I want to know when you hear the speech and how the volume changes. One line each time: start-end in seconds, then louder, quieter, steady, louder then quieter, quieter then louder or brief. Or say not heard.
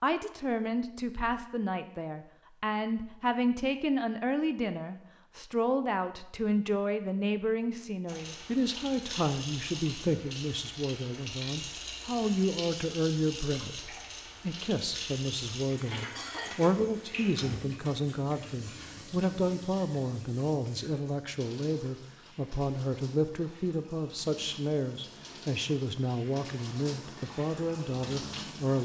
0.0-28.8 steady.